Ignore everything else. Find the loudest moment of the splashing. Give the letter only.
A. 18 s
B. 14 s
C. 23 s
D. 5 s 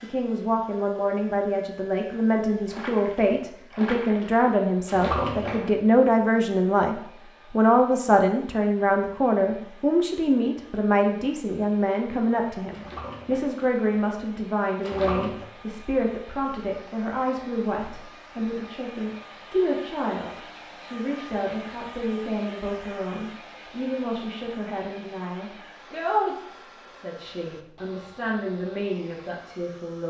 D.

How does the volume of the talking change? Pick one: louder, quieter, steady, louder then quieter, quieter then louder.
quieter.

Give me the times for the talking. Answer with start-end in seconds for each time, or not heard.
0.0-30.0.